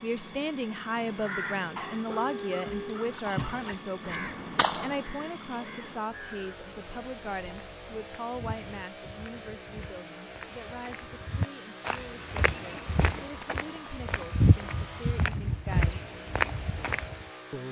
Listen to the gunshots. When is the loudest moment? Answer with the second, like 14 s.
5 s.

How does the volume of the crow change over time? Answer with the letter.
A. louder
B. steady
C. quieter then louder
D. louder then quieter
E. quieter
E.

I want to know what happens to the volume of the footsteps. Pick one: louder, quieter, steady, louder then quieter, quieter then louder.
louder.